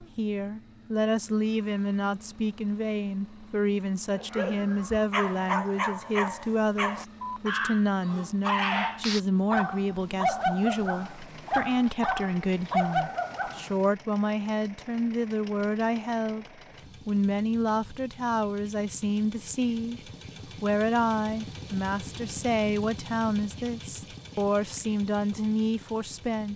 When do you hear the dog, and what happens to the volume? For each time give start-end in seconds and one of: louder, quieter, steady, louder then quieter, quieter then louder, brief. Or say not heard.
4.2-13.8 steady.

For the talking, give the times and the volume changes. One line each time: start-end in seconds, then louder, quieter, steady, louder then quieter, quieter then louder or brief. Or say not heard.
0.0-16.4 steady
17.1-20.0 brief
20.6-26.5 steady.